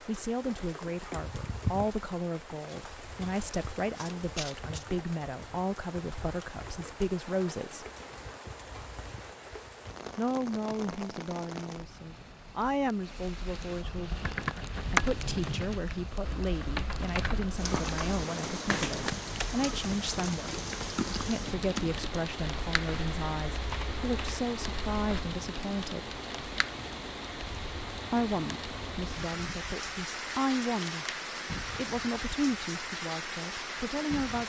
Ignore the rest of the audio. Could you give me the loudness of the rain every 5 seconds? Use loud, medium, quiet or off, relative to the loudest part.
medium, medium, medium, loud, loud, loud, loud.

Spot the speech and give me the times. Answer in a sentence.
The speech can be heard from 0.1 to 7.8 s, from 10.2 to 14.1 s, from 14.8 to 26.2 s, from 28.1 to 31.1 s and from 31.8 to 34.4 s.